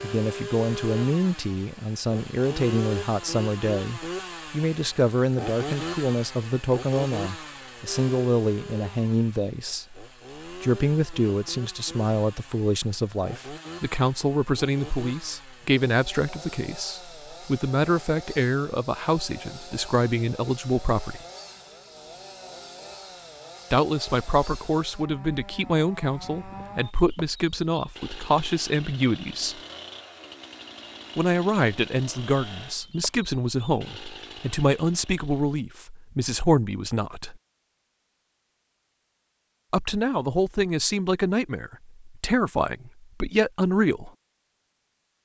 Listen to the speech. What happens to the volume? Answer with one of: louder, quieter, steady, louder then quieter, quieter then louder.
steady.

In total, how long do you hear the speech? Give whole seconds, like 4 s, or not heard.
38 s.